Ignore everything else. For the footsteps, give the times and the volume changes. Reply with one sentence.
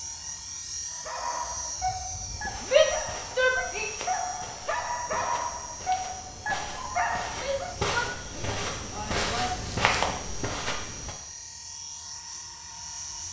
You can hear the footsteps from 2.2 to 11.2 s, getting louder.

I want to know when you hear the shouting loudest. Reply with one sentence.
The loudest moment of the shouting is at 3 seconds.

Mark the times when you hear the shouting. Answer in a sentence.
The shouting can be heard from 2.7 to 3.9 s and from 7.3 to 9.6 s.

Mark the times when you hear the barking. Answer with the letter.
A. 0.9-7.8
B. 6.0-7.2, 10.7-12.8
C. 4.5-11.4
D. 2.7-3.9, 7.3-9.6
A.